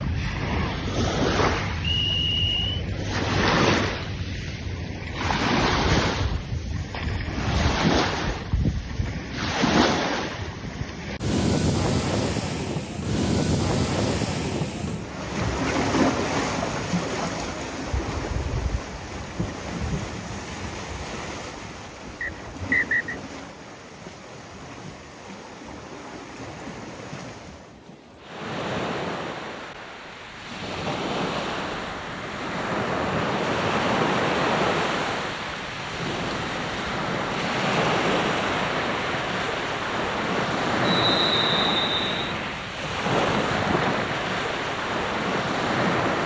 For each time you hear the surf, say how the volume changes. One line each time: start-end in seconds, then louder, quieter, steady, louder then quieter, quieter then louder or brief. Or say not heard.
0.0-46.2 quieter then louder.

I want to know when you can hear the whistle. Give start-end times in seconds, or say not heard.
1.9-2.6, 22.2-23.1, 40.9-42.4.